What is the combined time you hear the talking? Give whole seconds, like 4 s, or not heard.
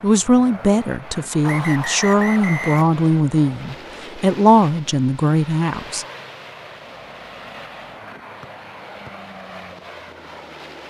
6 s.